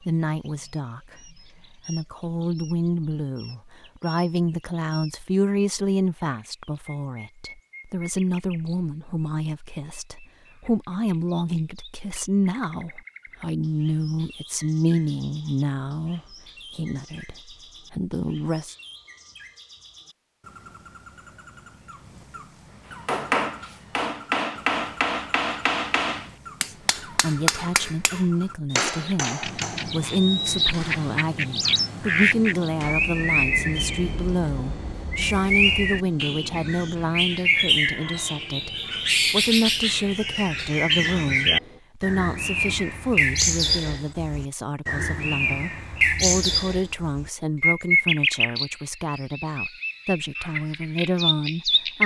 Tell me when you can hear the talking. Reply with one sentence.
The talking can be heard from 0.1 to 18.8 s and from 26.6 to 52.0 s.